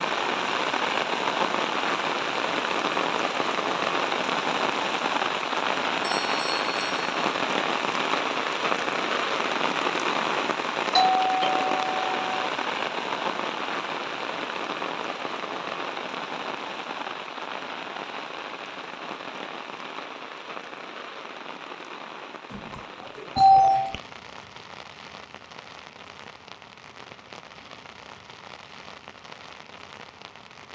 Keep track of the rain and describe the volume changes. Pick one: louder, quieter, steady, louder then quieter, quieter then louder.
quieter.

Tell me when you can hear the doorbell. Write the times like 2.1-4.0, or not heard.
6.0-7.0, 10.9-12.5, 22.5-24.0.